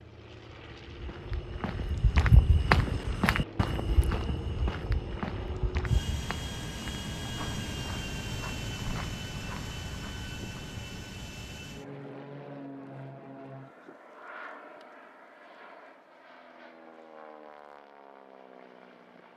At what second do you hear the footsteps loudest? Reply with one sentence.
The volume of the footsteps peaks at 3 seconds.